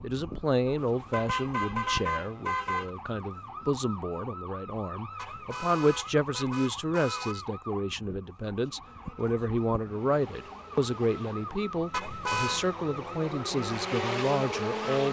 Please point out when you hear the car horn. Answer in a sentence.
You can hear the car horn from 0.8 to 2.9 s, from 5.2 to 7.5 s and from 11.9 to 12.7 s.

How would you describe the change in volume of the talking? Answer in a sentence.
The volume of the talking stays about the same.